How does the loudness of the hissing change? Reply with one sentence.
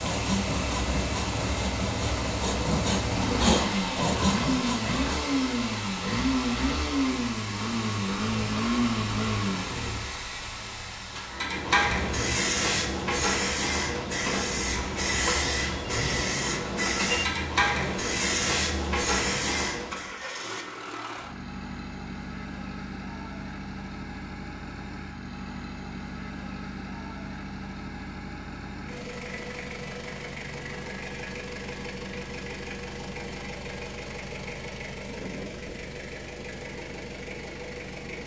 The loudness of the hissing goes up.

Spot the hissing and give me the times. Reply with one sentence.
You can hear the hissing from 0.0 to 20.1 s.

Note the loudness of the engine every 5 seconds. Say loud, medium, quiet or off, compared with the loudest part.
loud, loud, quiet, medium, medium, medium, medium, medium.